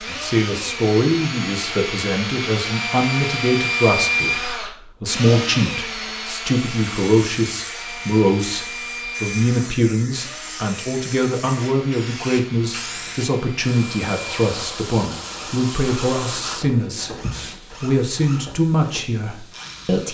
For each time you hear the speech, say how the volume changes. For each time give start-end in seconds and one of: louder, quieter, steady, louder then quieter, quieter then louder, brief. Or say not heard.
0.0-17.1 steady
17.8-20.0 brief.